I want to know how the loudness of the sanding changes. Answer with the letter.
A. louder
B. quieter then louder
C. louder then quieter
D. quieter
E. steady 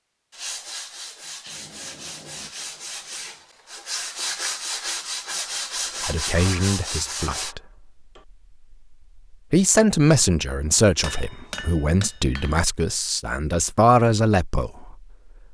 A.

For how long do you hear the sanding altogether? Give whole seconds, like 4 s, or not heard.
7 s.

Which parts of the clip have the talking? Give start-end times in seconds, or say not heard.
6.0-7.6, 9.3-15.1.